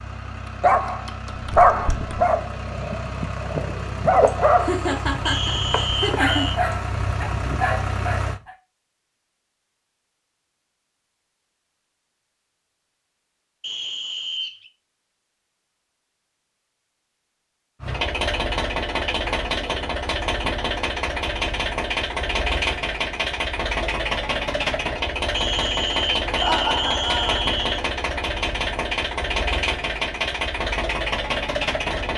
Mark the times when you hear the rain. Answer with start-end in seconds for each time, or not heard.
not heard.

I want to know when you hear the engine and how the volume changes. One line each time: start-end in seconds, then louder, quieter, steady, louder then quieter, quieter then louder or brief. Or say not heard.
0.0-8.4 louder
17.8-32.1 steady.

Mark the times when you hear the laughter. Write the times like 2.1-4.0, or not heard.
4.2-6.8, 26.4-27.4.